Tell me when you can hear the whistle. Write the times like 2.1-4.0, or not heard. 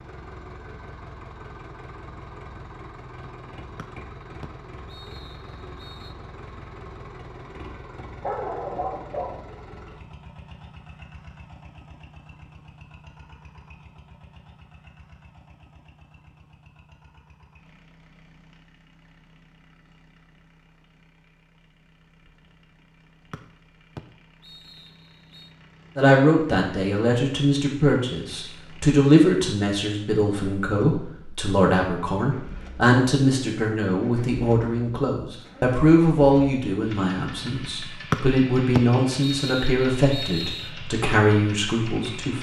3.8-6.2, 23.3-25.5, 38.1-40.7.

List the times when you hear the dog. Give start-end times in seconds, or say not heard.
8.2-9.5.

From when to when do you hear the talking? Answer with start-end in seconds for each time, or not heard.
25.9-42.3.